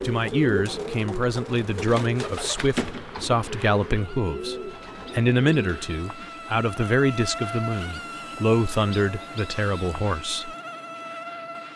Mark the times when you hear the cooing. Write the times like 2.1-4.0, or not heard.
0.0-6.4.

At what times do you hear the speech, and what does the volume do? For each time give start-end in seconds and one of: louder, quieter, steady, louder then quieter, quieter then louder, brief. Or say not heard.
0.0-10.5 steady.